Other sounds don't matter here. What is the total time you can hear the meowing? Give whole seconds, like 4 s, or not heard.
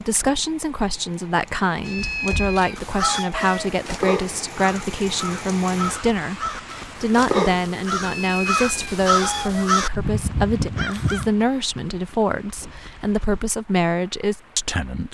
4 s.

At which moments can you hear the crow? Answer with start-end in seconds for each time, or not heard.
2.8-11.3.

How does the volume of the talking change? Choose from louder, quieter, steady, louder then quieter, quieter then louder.
steady.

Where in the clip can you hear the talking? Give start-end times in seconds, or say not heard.
0.1-15.0.